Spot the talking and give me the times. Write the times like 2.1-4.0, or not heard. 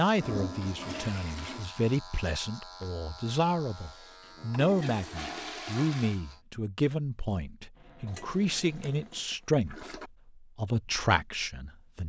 0.0-12.0.